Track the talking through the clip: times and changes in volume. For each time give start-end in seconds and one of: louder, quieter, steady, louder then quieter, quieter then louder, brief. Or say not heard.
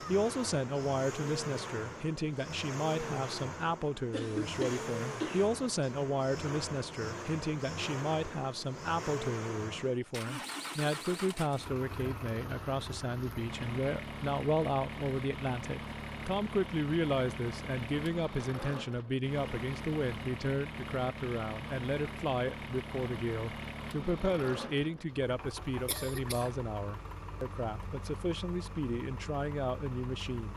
0.1-30.5 steady.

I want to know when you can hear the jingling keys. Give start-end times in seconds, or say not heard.
not heard.